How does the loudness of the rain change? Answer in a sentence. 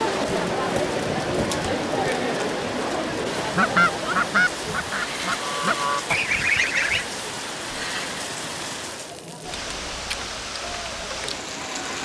The volume of the rain stays about the same.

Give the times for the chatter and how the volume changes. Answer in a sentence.
You can hear the chatter from 0.0 to 12.0 s, getting quieter.